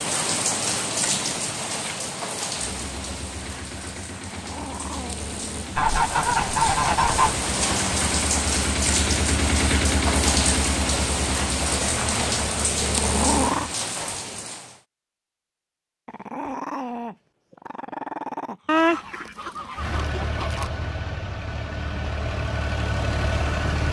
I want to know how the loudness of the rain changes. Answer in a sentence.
The volume of the rain goes down, then up.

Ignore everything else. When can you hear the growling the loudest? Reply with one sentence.
The loudest moment of the growling is at 13 seconds.